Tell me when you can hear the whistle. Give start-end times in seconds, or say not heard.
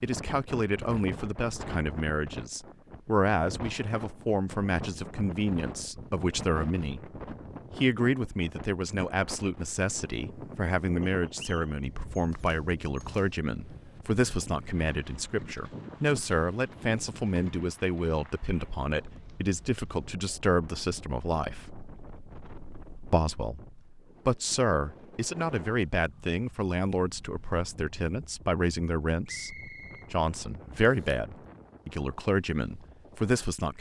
11.0-11.7, 29.2-30.1.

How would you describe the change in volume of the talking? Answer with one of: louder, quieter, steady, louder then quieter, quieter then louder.
steady.